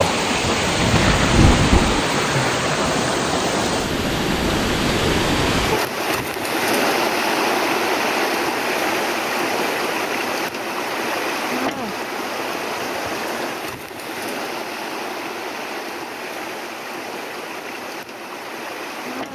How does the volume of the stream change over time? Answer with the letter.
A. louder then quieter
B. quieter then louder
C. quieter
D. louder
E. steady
C.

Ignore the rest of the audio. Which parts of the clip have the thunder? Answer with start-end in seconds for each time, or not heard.
0.6-2.0.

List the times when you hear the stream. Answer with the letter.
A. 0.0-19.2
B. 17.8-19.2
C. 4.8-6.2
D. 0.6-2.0
A.